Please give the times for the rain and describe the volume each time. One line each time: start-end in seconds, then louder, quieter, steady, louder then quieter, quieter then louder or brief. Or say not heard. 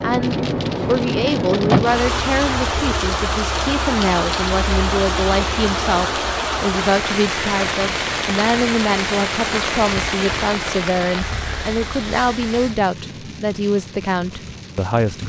0.0-15.2 quieter.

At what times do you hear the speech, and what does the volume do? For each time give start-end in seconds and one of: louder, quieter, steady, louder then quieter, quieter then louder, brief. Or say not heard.
0.0-15.2 steady.